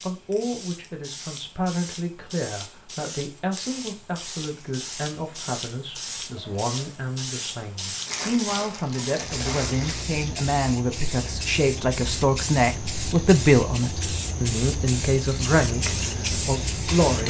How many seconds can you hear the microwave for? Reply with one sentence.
You can't hear the microwave here.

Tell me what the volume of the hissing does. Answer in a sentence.
The loudness of the hissing goes up.